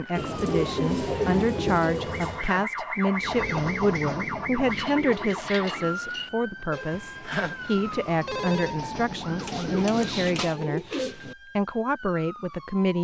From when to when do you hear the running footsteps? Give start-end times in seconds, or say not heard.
not heard.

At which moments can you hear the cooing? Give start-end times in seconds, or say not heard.
0.1-2.5, 4.7-6.3, 9.3-11.3.